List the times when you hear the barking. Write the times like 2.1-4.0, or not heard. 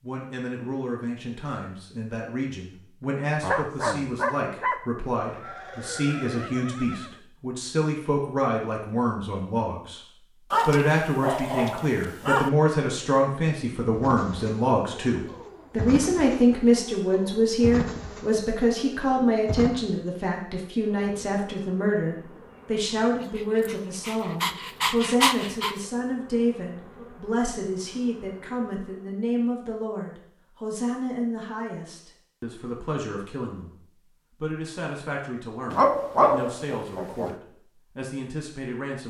3.4-4.8, 10.5-12.5, 23.4-25.8, 35.7-37.4.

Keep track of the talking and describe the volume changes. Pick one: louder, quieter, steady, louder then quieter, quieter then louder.
louder then quieter.